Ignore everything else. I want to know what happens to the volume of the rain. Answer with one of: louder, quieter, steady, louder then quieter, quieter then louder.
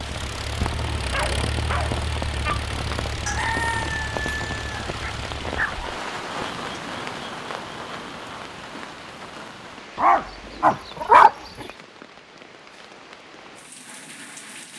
quieter.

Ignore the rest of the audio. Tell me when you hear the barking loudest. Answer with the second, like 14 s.
11 s.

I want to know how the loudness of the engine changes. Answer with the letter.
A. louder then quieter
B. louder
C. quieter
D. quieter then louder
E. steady
C.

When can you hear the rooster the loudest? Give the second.
4 s.